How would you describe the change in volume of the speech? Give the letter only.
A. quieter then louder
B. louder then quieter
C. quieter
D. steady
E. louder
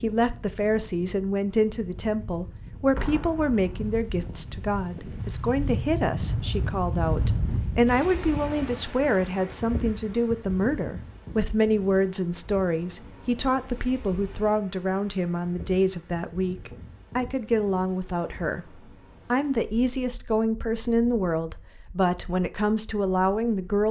D.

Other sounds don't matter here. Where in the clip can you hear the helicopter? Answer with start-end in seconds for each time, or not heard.
not heard.